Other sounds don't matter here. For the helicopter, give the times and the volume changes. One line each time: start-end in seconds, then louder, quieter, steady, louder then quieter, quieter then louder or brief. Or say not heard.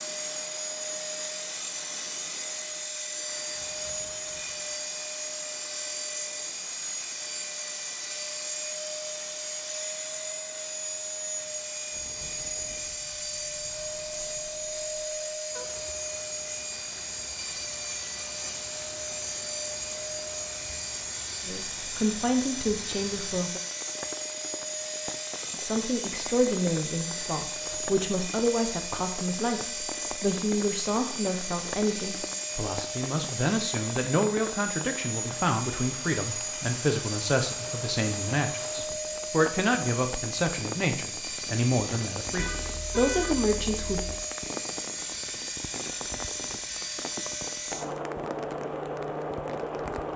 0.0-50.1 steady.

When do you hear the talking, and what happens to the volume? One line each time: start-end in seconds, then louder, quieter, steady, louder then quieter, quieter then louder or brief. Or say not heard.
21.4-23.6 brief
25.6-44.0 steady.